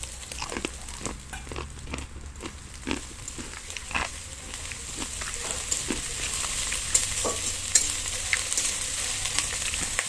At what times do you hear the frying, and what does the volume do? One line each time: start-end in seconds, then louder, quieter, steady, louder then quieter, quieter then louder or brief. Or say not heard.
0.0-10.0 louder.